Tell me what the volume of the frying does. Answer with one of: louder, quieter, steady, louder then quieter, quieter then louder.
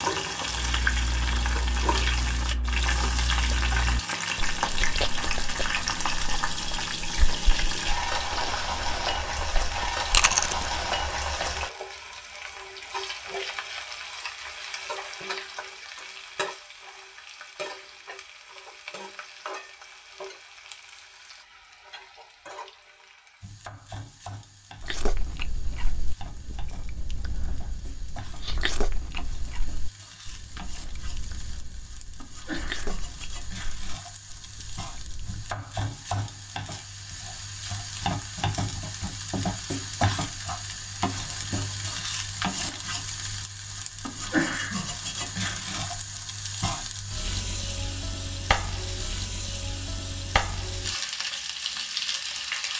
quieter then louder.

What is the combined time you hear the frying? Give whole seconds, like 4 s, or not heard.
53 s.